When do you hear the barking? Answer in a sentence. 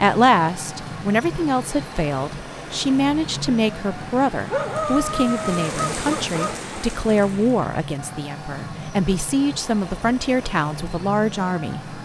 The barking can be heard from 4.5 to 6.7 s.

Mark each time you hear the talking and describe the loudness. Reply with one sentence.
The talking can be heard from 0.0 to 12.0 s, at a steady volume.